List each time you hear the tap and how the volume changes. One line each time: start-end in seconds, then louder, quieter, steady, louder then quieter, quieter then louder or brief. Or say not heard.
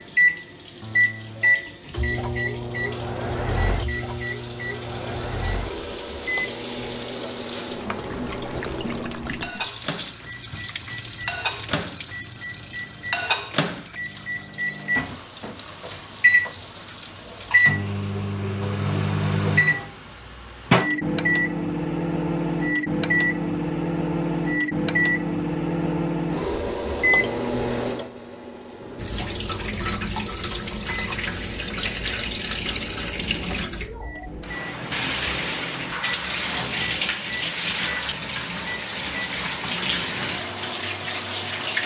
0.0-17.6 louder then quieter
28.9-41.8 steady.